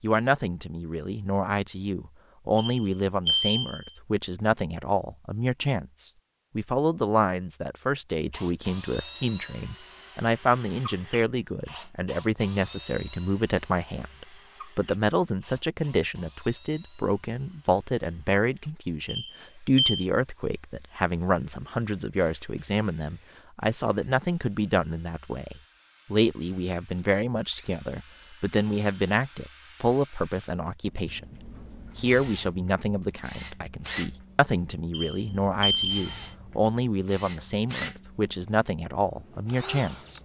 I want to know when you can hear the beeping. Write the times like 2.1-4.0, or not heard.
2.5-3.9, 19.1-20.1, 34.9-36.1.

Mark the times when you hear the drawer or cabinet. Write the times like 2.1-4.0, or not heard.
not heard.